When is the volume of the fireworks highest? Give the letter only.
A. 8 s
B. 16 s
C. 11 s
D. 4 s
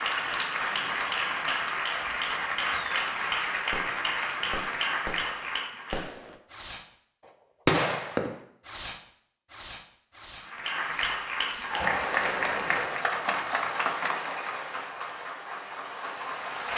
A.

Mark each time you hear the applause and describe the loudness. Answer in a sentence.
The applause can be heard from 0.0 to 6.1 s, at a steady volume; and from 10.4 to 16.7 s, getting quieter.